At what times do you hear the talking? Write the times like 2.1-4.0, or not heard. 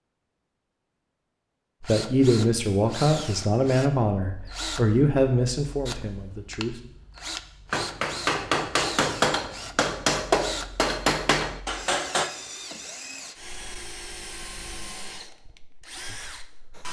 1.8-6.8.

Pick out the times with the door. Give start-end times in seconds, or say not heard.
not heard.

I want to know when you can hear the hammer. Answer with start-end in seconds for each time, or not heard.
7.7-12.3.